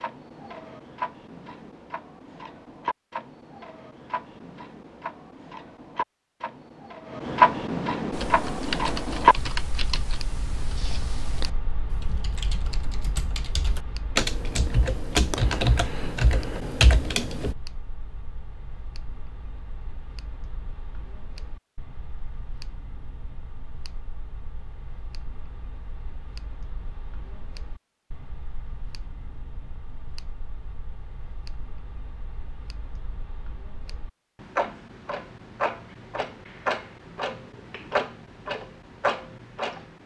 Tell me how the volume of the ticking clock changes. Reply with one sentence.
The loudness of the ticking clock goes down, then up.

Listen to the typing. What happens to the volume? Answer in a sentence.
The loudness of the typing goes down, then up.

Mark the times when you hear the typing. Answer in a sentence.
The typing can be heard from 8.1 to 17.6 s.